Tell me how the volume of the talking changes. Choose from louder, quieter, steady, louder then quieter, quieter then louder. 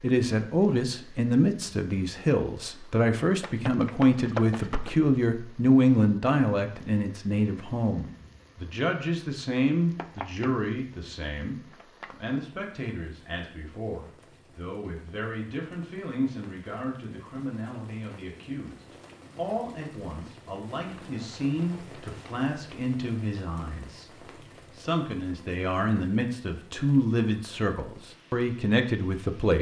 quieter then louder.